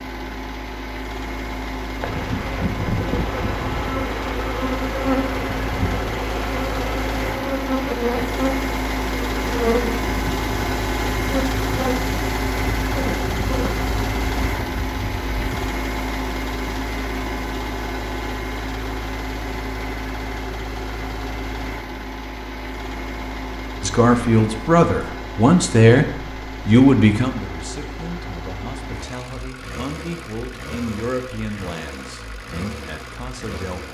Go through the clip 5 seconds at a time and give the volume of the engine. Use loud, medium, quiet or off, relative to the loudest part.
medium, loud, loud, loud, medium, medium, medium.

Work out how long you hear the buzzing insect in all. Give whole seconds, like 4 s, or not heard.
14 s.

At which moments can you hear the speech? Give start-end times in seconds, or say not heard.
23.8-33.8.